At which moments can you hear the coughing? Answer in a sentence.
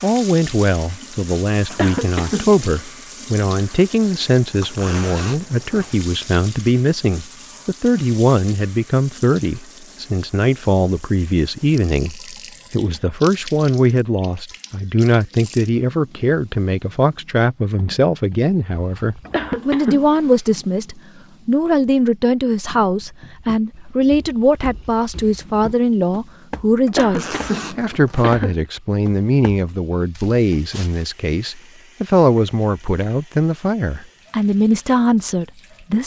The coughing can be heard from 1.7 to 2.9 s, from 19.2 to 20.4 s and from 26.9 to 28.6 s.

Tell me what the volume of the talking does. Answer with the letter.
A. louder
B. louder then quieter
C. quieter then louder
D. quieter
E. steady
E.